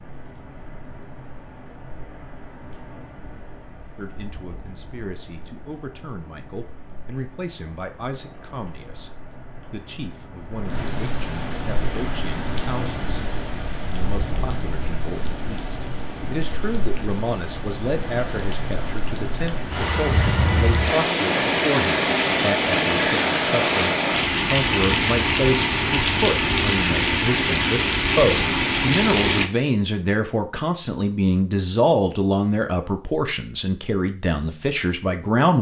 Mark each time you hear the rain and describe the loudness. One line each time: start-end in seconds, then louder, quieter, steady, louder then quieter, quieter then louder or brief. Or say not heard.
0.0-29.5 louder.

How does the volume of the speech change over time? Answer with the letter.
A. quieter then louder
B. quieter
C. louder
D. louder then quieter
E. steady
C.